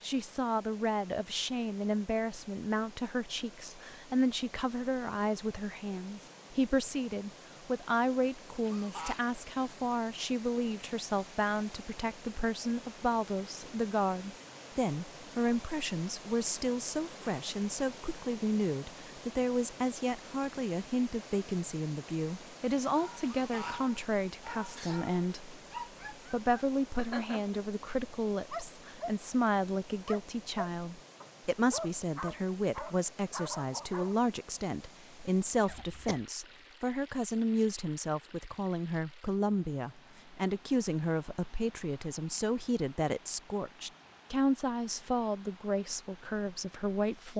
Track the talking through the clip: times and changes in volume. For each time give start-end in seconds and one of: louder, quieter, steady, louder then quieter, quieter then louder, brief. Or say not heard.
0.0-47.3 steady.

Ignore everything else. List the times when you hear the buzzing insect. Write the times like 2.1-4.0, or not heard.
not heard.